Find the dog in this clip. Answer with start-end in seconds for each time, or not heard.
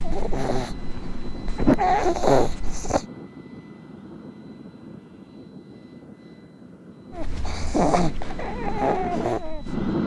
0.0-3.0, 7.2-9.9.